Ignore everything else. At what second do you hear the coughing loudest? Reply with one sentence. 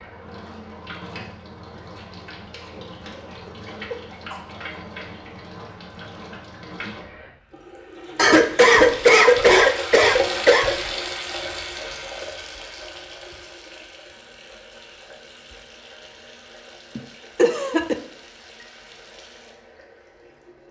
The loudest moment of the coughing is at 9 seconds.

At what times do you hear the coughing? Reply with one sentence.
The coughing can be heard from 3.5 to 4.4 s, from 8.2 to 10.9 s and from 16.9 to 17.9 s.